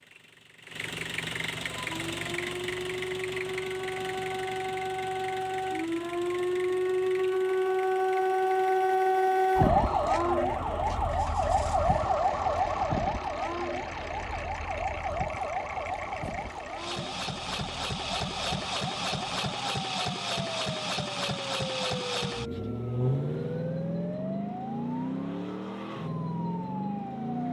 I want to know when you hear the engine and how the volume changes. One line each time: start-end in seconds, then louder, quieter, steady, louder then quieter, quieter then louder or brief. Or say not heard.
0.0-27.4 quieter then louder.